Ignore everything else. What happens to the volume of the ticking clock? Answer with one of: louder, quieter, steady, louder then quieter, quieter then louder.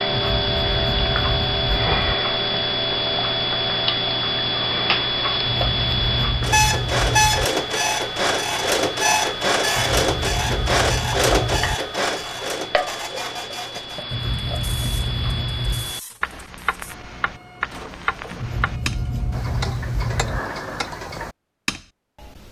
quieter.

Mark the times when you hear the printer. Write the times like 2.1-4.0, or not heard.
6.4-19.5.